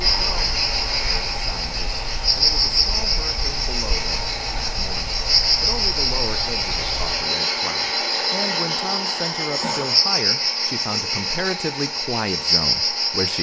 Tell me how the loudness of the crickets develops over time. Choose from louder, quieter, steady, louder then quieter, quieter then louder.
steady.